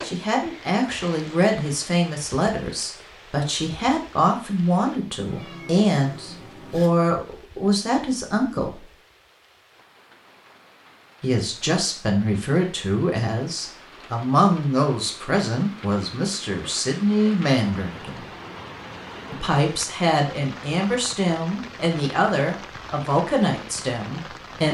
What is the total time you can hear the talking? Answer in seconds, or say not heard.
21 s.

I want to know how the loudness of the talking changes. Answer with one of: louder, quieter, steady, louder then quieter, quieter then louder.
steady.